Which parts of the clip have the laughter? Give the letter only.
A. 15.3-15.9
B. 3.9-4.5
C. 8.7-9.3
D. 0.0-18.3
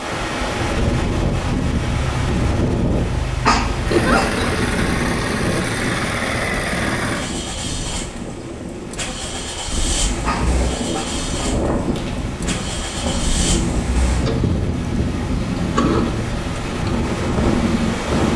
B.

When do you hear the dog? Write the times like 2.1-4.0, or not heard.
3.5-4.3, 10.2-11.2.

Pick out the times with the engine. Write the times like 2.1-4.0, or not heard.
0.0-18.3.